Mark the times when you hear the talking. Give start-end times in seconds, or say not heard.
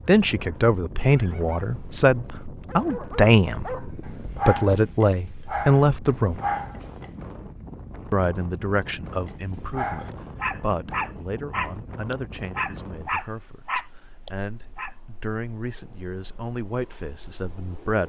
0.1-6.4, 8.1-18.0.